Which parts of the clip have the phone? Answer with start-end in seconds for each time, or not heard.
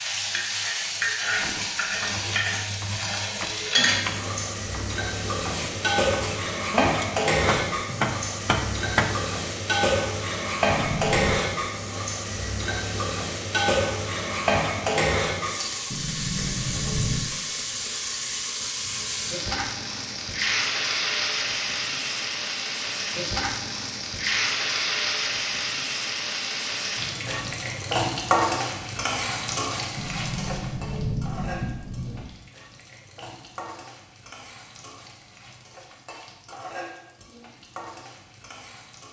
not heard.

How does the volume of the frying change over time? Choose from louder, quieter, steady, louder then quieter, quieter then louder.
quieter.